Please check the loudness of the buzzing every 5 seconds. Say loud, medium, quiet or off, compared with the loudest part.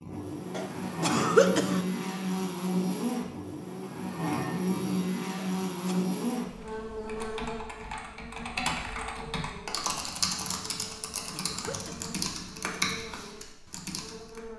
loud, loud, quiet.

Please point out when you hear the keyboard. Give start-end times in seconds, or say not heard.
6.5-14.4.